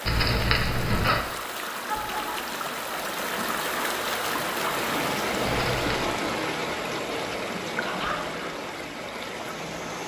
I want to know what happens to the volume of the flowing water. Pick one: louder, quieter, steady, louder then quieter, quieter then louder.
louder then quieter.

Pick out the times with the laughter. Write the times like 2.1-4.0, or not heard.
1.9-2.5, 7.8-8.3.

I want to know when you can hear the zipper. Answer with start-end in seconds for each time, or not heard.
0.1-1.2, 5.5-6.2.